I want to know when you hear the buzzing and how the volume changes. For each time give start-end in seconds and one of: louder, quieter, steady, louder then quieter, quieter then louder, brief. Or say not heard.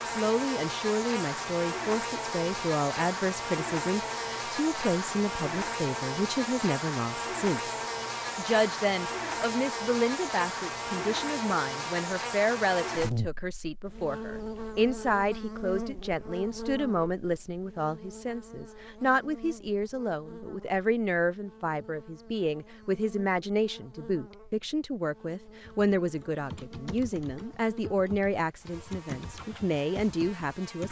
0.0-30.8 quieter.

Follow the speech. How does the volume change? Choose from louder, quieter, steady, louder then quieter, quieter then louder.
steady.